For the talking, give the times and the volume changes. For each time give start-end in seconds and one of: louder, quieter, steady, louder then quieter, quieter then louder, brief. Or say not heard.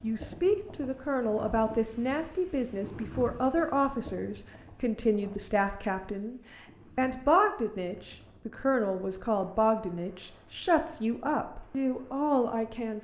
0.0-12.9 steady.